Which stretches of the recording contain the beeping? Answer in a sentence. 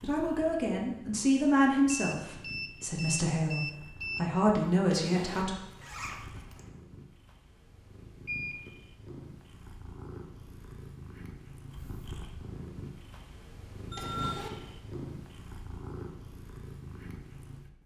The beeping can be heard from 1.9 to 4.3 s, from 8.2 to 8.7 s and from 13.9 to 14.4 s.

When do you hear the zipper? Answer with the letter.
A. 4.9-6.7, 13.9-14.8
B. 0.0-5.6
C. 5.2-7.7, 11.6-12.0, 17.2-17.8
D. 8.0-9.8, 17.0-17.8
A.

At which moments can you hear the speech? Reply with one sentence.
You can hear the speech from 0.0 to 5.6 s.